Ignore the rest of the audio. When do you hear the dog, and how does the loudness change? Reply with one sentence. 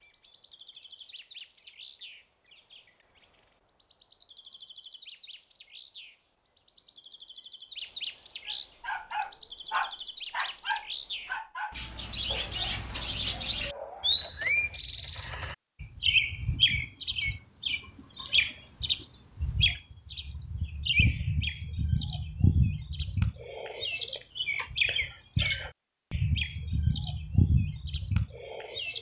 The dog can be heard from 8.4 to 14.8 s, getting quieter.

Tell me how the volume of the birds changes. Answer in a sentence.
The volume of the birds goes up.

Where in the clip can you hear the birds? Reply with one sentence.
The birds can be heard from 0.0 to 28.9 s.